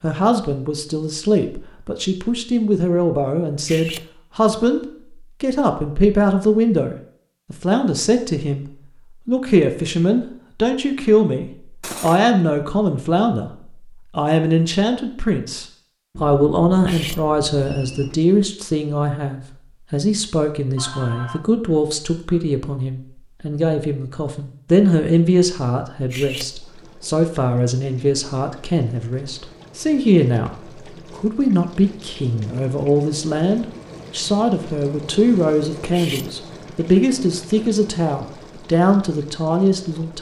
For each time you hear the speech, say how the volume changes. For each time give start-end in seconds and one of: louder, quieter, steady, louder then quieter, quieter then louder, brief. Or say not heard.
0.0-40.1 steady.